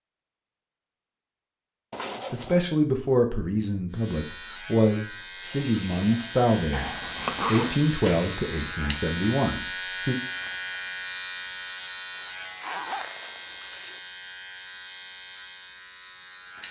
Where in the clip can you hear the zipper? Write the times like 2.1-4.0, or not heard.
1.9-2.6, 6.7-8.0, 12.1-14.0.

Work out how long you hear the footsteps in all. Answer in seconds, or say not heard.
not heard.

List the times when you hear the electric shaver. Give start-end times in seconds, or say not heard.
3.9-16.6.